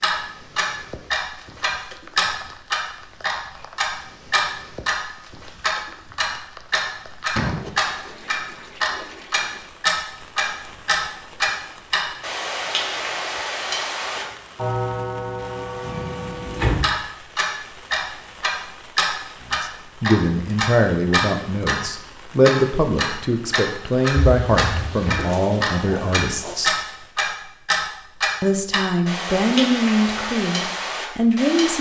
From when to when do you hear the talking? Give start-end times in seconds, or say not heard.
19.4-26.8, 28.4-31.7.